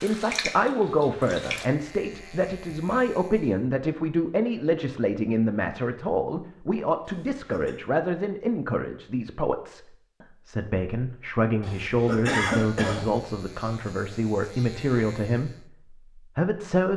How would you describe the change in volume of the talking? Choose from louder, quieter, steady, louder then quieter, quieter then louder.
steady.